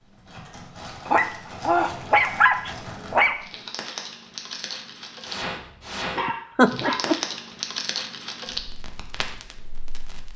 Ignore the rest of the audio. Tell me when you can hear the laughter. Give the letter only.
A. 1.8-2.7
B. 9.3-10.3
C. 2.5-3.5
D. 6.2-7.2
D.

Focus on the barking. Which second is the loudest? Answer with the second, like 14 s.
2 s.